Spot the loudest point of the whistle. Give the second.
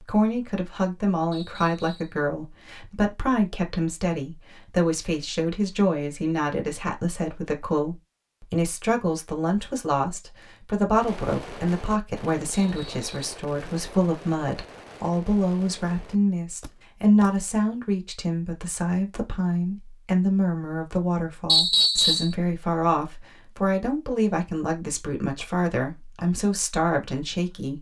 22 s.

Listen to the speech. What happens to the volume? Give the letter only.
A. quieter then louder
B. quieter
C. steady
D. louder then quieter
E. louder
C.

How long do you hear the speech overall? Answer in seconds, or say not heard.
28 s.